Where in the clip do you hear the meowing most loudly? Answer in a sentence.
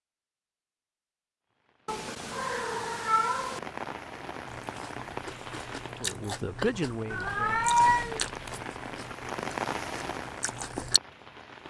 The loudest moment of the meowing is at 8 seconds.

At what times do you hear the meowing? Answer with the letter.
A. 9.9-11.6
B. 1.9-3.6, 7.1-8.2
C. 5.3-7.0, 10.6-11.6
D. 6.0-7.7
B.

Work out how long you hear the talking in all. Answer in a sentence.
You can hear the talking for 2 seconds altogether.